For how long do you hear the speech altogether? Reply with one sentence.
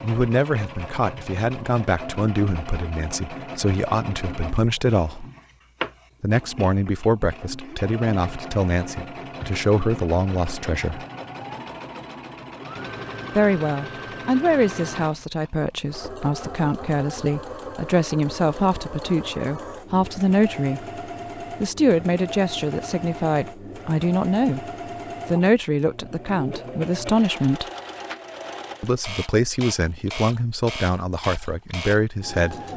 You can hear the speech for 27 seconds altogether.